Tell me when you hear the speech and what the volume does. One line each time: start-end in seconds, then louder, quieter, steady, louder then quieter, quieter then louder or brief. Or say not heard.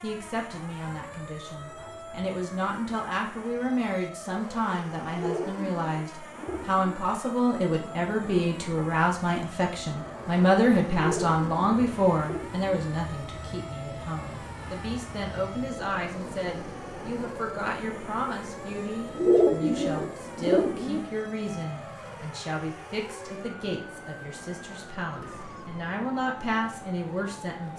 0.0-27.7 louder then quieter.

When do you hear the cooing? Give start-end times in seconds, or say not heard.
5.1-7.0, 10.9-12.8, 19.1-21.0.